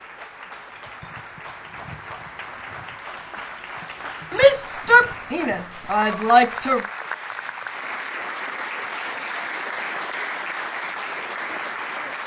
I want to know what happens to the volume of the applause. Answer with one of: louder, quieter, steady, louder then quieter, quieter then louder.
louder.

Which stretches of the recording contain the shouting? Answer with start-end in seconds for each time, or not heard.
4.3-6.8.